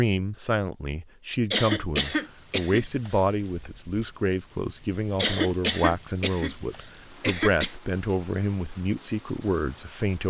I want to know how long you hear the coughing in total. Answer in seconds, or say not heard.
4 s.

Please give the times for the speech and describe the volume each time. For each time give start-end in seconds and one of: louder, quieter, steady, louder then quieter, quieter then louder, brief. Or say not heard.
0.0-10.2 steady.